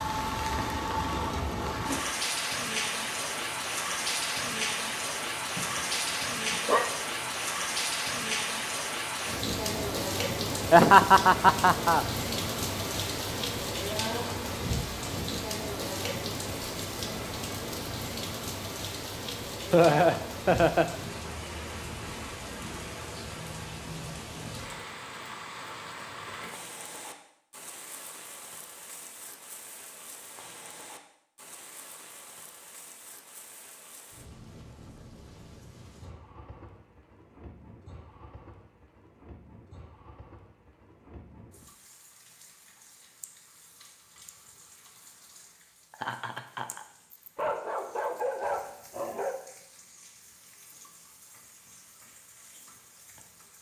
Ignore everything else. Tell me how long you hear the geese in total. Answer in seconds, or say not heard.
not heard.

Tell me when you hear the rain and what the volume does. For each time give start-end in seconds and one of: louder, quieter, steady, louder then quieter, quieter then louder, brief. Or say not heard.
0.0-53.5 quieter.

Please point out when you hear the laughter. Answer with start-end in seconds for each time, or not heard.
10.7-12.1, 19.7-20.9, 45.9-46.9.